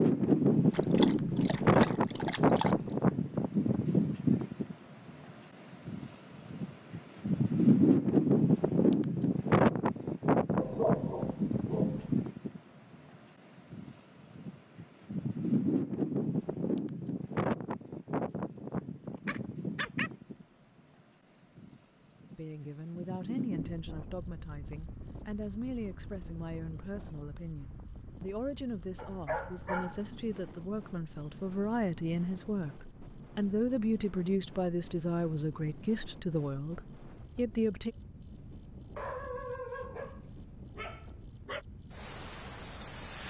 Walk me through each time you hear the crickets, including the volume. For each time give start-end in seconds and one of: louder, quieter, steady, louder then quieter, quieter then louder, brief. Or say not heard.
0.0-43.2 louder.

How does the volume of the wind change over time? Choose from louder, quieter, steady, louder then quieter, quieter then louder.
quieter.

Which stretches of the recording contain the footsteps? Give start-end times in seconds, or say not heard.
not heard.